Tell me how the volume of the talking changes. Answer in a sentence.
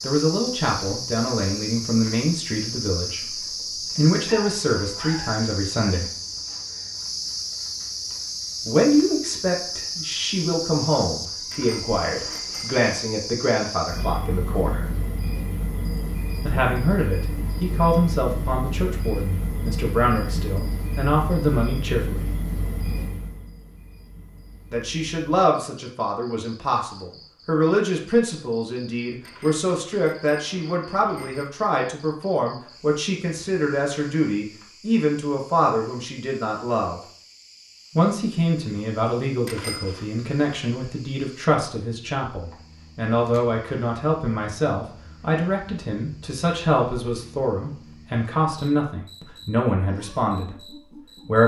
The volume of the talking stays about the same.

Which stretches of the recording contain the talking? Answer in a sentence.
The talking can be heard from 0.0 to 6.1 s, from 8.7 to 14.9 s, from 16.4 to 22.3 s, from 24.7 to 37.0 s and from 38.0 to 51.4 s.